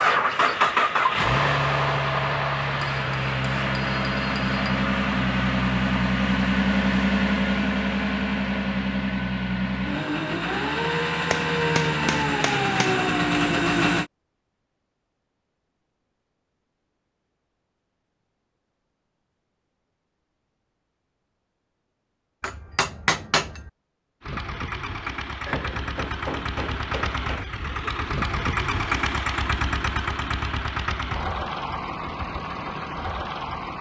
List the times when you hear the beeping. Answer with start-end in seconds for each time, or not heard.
not heard.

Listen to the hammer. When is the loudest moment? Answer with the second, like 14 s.
23 s.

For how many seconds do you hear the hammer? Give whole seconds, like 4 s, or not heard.
7 s.